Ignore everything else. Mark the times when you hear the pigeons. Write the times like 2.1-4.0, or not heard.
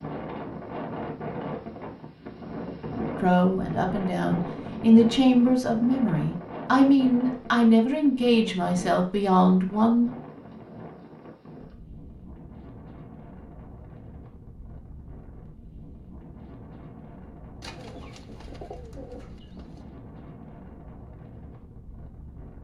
17.6-19.9.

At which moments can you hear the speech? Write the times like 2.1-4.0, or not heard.
3.2-10.1.